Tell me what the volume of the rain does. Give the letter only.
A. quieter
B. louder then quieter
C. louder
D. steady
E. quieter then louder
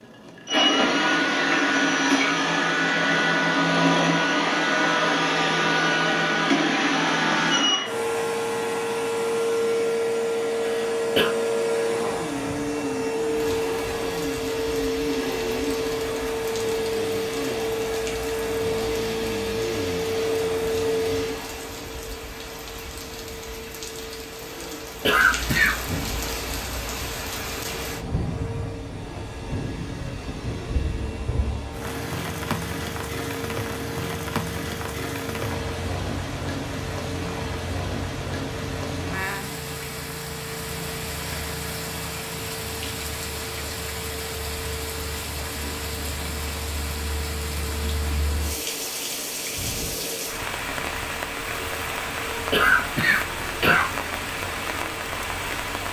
C.